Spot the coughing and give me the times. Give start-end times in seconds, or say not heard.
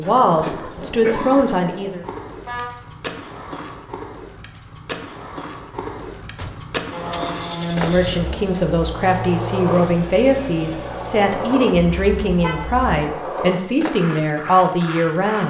0.3-1.5.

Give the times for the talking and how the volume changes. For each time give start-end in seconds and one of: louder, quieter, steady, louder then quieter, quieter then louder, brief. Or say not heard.
0.0-2.0 brief
7.5-15.4 steady.